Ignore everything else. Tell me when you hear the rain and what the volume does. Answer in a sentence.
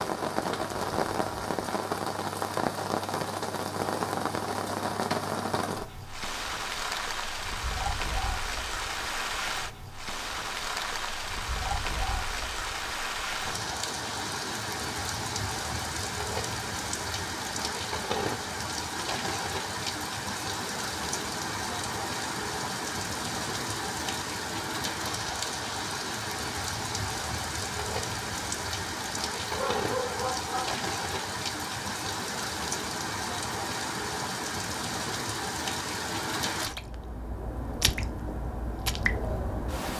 The rain can be heard from 0.0 to 39.9 s, at a steady volume.